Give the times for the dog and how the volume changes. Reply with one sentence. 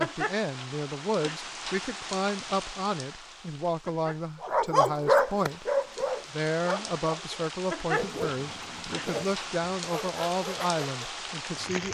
You can hear the dog from 4.4 to 11.1 s, getting quieter.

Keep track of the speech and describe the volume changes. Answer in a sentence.
The volume of the speech stays about the same.